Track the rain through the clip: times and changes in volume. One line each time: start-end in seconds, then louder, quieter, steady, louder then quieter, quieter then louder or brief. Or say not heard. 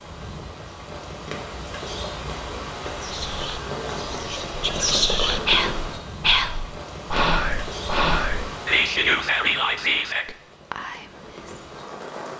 0.0-12.3 quieter.